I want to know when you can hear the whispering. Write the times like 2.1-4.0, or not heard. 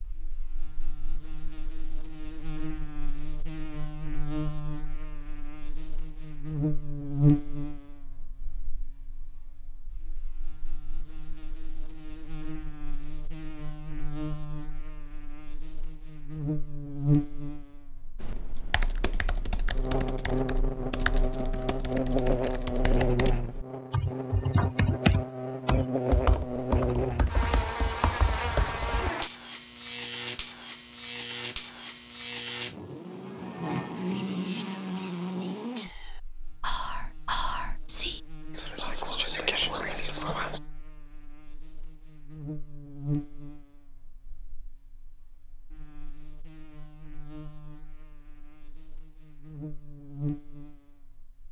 33.9-40.6.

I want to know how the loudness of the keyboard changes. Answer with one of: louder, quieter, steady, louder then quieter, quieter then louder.
louder then quieter.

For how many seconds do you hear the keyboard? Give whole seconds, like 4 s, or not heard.
11 s.